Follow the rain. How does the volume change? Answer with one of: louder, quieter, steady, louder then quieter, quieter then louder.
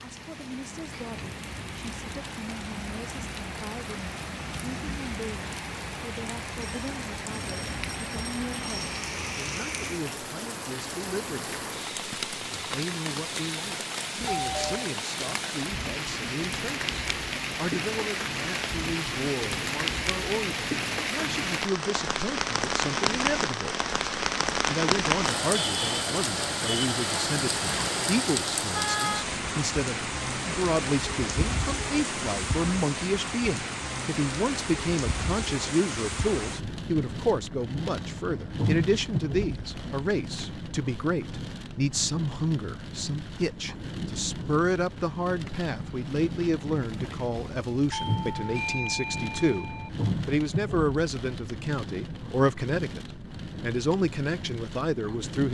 louder then quieter.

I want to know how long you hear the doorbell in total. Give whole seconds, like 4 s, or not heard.
3 s.